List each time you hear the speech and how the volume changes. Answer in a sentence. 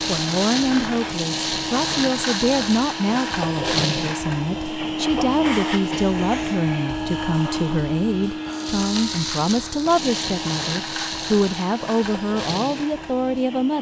You can hear the speech from 0.1 to 13.7 s, at a steady volume.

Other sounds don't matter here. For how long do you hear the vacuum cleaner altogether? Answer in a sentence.
You can hear the vacuum cleaner for 14 seconds altogether.